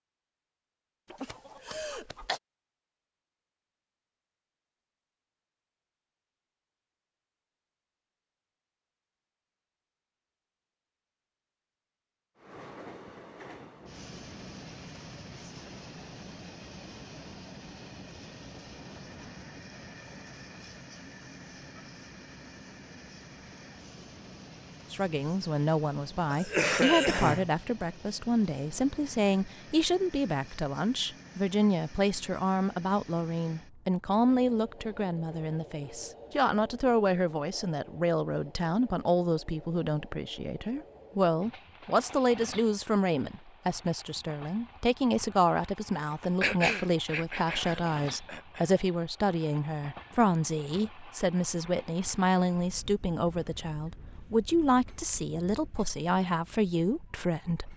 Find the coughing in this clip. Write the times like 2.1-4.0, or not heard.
1.1-2.4, 26.3-27.5, 46.4-48.6.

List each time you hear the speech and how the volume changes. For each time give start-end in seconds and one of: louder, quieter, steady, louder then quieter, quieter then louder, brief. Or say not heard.
24.9-57.7 steady.